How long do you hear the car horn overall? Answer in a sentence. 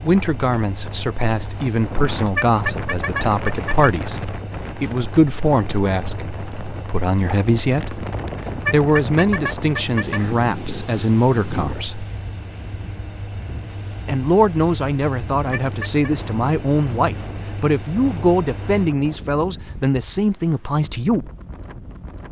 You can hear the car horn for 4 seconds altogether.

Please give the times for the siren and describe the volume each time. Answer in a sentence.
The siren can't be heard in this clip.